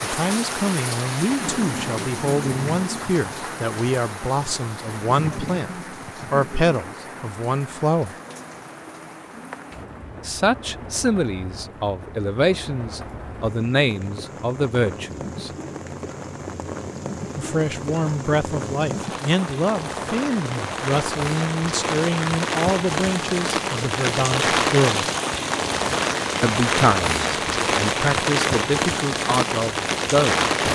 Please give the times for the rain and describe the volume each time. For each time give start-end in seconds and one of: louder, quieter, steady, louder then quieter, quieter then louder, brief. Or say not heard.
0.0-30.7 quieter then louder.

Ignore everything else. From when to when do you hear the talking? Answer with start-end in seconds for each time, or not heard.
0.0-5.7, 6.3-8.2, 10.2-15.5, 17.4-25.1, 26.4-30.5.